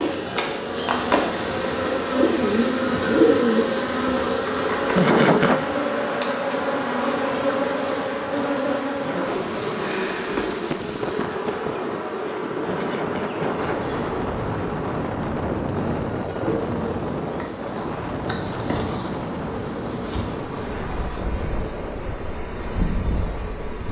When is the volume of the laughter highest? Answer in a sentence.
The volume of the laughter peaks at 5 seconds.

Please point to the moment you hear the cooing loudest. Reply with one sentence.
The volume of the cooing peaks at 3 seconds.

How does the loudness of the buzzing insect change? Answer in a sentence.
The volume of the buzzing insect goes down.